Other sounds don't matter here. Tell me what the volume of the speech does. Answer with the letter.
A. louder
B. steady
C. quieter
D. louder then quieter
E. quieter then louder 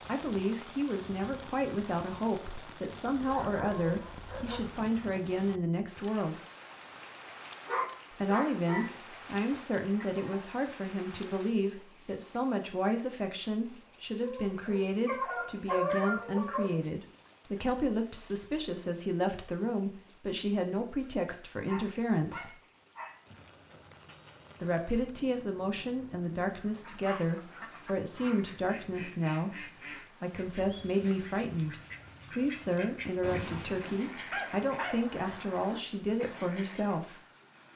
B.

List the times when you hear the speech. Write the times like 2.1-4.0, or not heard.
0.1-6.4, 8.1-22.6, 24.6-37.2.